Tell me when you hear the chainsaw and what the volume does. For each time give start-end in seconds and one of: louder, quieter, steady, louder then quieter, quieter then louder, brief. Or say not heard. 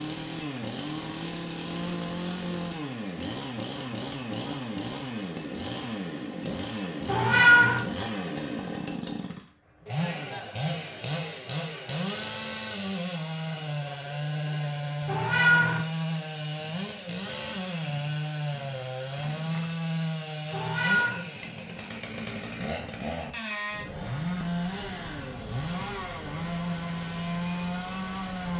0.0-28.5 steady.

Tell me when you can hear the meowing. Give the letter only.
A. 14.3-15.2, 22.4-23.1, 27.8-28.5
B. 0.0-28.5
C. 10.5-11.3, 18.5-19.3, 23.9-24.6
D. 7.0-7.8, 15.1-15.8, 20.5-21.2
D.